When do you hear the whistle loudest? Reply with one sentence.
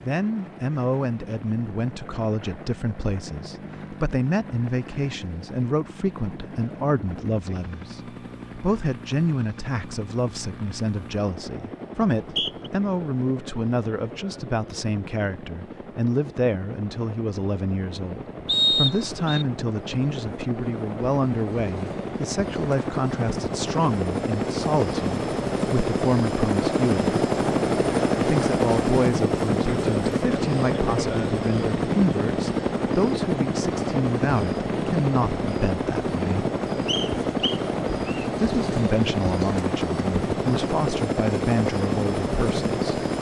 The volume of the whistle peaks at 19 seconds.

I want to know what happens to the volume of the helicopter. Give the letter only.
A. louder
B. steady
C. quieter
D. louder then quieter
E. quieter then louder
A.